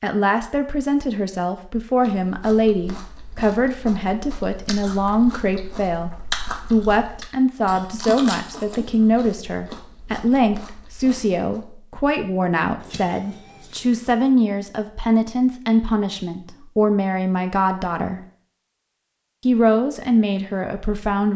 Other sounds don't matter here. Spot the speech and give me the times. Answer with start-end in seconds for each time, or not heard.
0.0-6.1, 6.7-18.2, 19.4-21.3.